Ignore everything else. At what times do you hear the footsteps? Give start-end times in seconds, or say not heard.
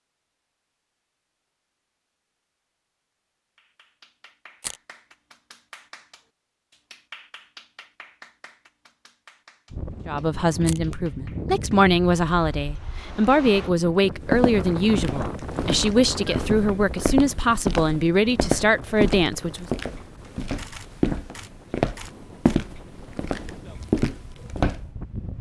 14.2-24.9.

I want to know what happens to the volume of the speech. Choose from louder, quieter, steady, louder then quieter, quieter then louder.
steady.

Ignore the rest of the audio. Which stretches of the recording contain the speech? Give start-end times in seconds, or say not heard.
10.1-19.6.